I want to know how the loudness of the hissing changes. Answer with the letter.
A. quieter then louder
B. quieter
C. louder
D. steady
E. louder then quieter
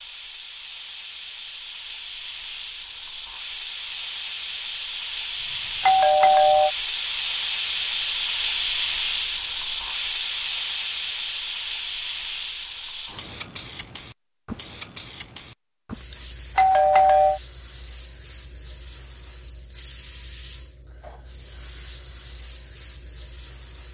E.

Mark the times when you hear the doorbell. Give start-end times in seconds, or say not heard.
5.4-6.7, 16.1-17.4.